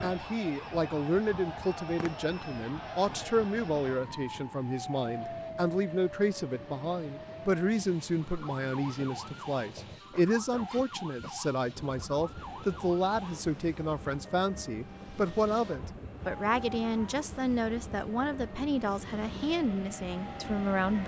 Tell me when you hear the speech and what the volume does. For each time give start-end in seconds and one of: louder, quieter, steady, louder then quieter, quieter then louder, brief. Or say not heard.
0.0-21.0 steady.